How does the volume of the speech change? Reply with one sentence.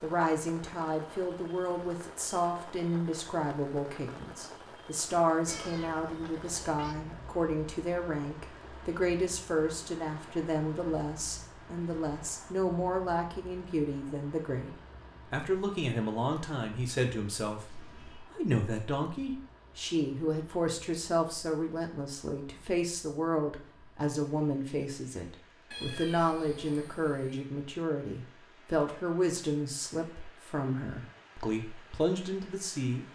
The loudness of the speech stays about the same.